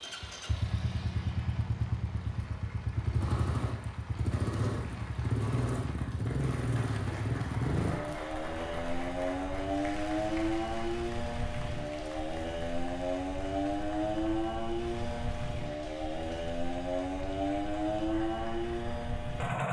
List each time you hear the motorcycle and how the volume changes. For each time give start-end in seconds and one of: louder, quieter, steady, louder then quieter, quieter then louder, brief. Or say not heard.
0.0-19.6 steady.